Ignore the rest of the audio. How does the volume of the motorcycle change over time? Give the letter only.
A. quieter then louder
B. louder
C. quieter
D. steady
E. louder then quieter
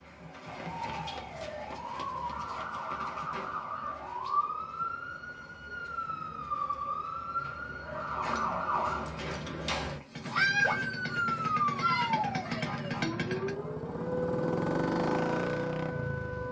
B.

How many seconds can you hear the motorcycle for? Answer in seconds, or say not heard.
6 s.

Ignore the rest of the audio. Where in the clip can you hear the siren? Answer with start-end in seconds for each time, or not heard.
0.0-16.4.